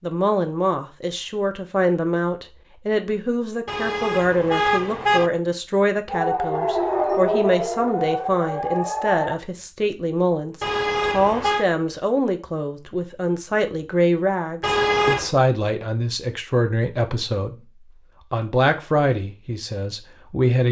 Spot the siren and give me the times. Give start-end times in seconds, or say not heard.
6.0-9.3.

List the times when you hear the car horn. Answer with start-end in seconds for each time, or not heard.
3.6-5.3, 10.6-11.7, 14.6-15.3.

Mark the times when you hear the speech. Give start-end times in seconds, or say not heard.
0.0-17.6, 18.3-20.6.